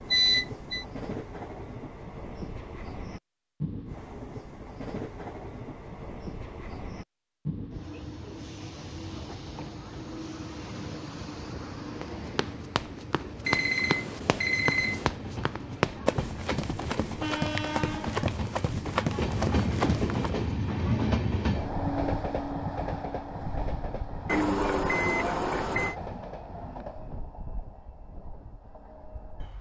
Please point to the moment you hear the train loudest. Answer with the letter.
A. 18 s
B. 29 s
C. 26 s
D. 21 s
D.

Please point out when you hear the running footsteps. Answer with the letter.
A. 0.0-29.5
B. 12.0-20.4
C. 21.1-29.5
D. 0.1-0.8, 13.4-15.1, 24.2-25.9
B.